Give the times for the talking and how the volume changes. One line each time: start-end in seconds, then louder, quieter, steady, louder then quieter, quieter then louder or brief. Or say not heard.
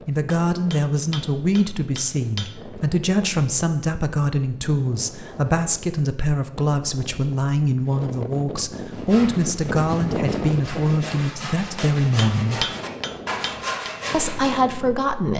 0.1-12.7 steady
14.1-15.3 brief.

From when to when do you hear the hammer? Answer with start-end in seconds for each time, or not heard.
0.3-2.5, 11.8-13.9.